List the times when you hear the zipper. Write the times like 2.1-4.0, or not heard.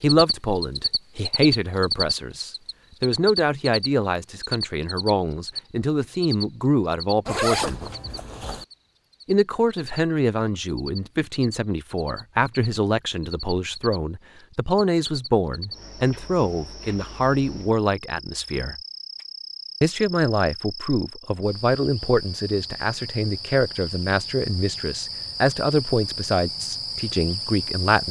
7.2-8.7.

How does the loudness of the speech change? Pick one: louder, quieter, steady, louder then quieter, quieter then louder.
steady.